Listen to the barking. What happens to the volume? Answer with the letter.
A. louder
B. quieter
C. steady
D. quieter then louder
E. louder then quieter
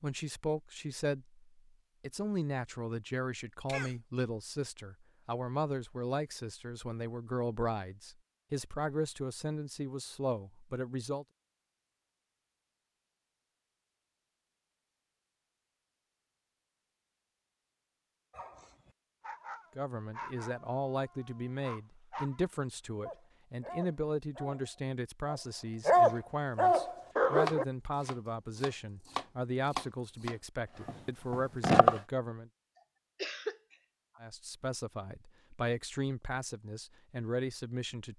A.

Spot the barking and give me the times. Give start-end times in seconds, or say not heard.
18.3-22.4, 23.1-27.6.